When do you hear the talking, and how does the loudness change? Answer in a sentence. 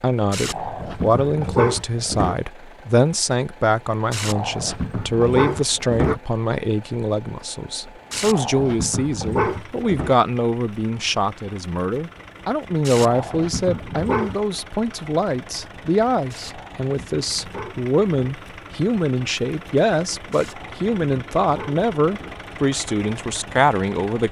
The talking can be heard from 0.0 to 24.2 s, at a steady volume.